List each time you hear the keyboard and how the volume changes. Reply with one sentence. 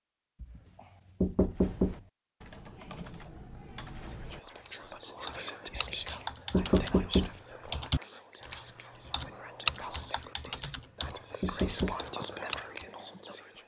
You can hear the keyboard from 1.6 to 12.8 s, getting louder then quieter.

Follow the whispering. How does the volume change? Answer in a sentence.
The loudness of the whispering goes down, then up.